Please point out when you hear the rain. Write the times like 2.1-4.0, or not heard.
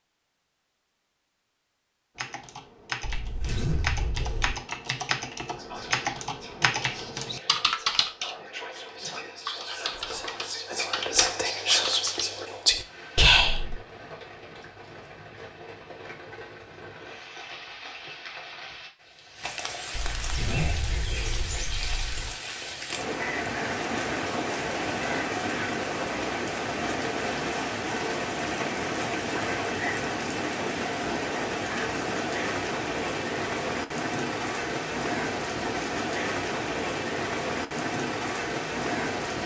12.7-39.4.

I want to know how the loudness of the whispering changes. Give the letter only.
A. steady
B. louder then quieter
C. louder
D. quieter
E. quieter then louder
C.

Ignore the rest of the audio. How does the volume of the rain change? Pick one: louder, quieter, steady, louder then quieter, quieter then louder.
louder.